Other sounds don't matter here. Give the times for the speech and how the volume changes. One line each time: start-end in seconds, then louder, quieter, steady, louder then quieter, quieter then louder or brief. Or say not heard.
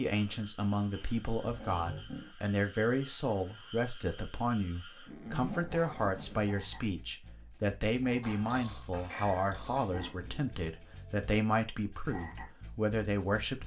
0.0-13.6 steady.